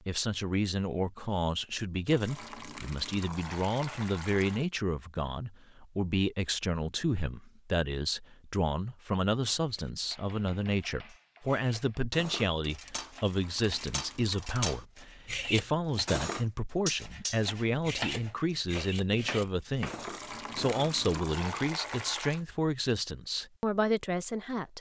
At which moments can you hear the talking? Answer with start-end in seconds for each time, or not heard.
0.1-24.7.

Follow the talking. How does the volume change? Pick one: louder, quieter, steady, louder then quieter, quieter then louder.
steady.